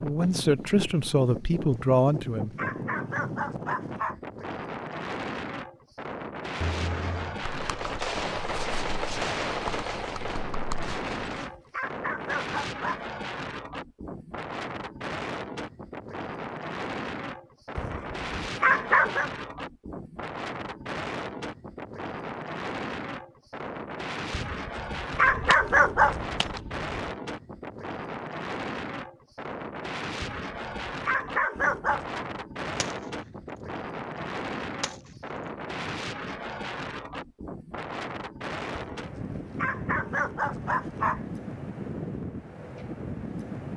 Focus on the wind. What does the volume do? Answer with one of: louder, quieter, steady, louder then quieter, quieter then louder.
steady.